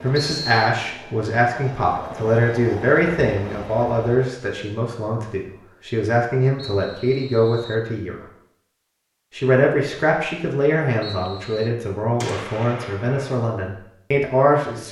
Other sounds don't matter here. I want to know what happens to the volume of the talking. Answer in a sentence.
The loudness of the talking stays about the same.